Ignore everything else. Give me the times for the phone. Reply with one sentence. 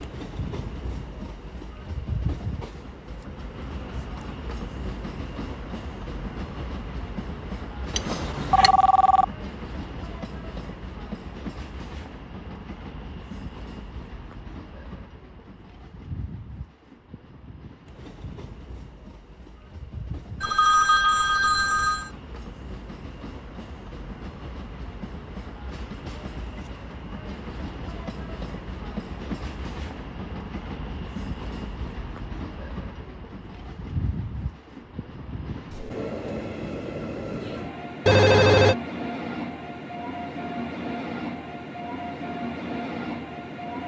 You can hear the phone from 8.0 to 9.2 s, from 20.4 to 22.1 s and from 38.0 to 38.8 s.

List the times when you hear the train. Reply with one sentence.
You can hear the train from 0.0 to 43.8 s.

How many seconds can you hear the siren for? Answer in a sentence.
The siren can't be heard in this clip.